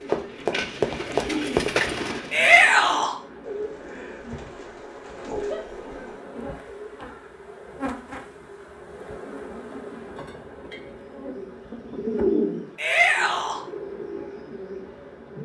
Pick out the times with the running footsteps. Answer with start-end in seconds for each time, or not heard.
0.0-1.7.